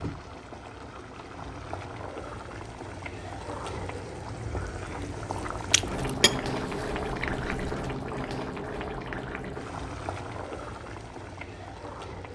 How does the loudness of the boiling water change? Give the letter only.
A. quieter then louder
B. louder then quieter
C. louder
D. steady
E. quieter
B.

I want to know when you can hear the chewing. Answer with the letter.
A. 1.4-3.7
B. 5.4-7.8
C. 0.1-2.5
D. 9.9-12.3
B.